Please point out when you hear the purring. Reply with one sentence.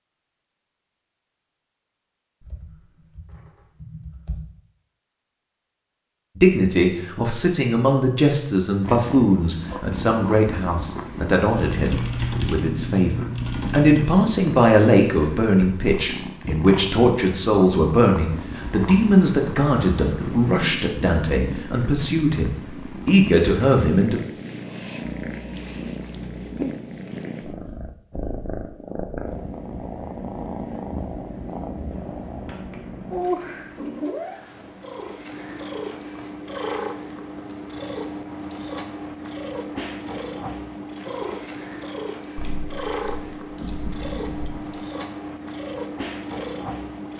The purring can be heard from 8.8 to 47.1 s.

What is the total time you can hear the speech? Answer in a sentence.
You can hear the speech for 18 seconds altogether.